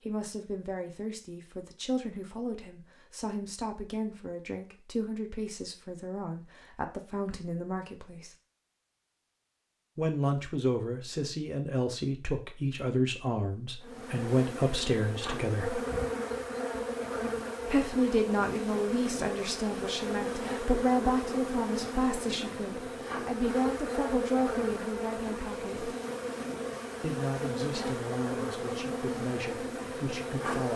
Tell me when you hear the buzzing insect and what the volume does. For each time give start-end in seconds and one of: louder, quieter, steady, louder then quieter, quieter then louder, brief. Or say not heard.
13.8-30.7 steady.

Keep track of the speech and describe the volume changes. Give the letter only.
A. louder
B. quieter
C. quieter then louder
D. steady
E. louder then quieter
E.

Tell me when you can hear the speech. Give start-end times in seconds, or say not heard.
0.0-8.3, 9.9-15.8, 17.6-25.9, 27.0-30.7.